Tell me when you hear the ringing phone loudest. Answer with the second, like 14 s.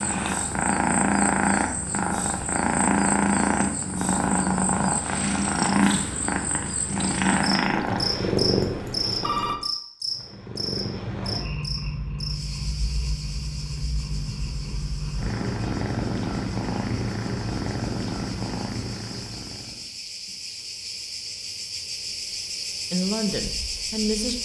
9 s.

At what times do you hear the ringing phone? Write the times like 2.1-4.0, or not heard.
7.6-9.6.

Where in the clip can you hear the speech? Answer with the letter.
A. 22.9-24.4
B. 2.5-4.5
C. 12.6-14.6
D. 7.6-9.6
A.